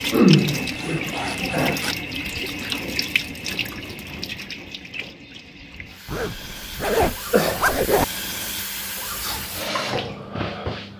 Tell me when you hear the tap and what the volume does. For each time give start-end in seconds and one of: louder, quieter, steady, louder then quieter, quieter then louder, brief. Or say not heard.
0.0-10.9 quieter then louder.